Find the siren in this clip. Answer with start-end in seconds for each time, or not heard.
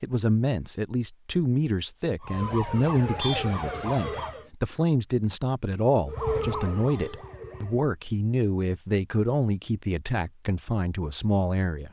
2.2-4.5, 6.0-7.9.